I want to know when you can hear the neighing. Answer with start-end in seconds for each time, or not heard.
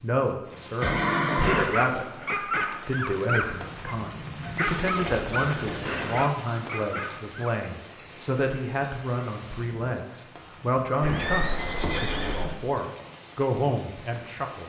0.8-1.7, 5.0-6.2, 11.0-12.6.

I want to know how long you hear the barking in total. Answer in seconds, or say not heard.
6 s.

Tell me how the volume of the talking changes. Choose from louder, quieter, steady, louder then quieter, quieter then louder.
steady.